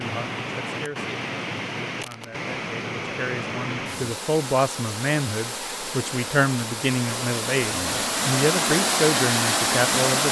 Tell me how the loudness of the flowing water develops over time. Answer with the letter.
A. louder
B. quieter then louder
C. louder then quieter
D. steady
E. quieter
A.